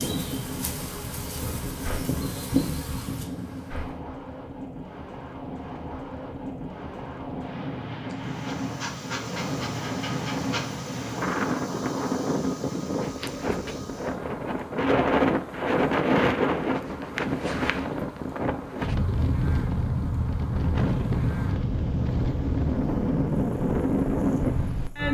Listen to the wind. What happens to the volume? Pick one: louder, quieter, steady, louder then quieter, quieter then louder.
louder.